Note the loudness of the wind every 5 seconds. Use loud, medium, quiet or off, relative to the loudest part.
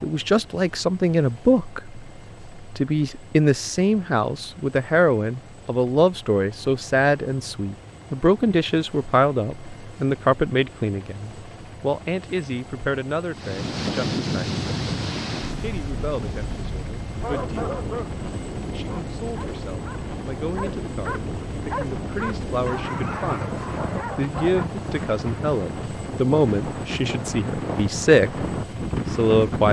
off, off, loud, medium, medium, loud.